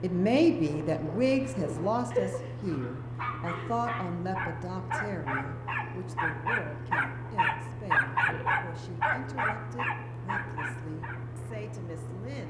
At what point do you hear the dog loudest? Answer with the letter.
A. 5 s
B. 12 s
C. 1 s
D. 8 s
D.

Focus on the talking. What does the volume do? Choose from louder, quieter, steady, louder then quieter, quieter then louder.
quieter.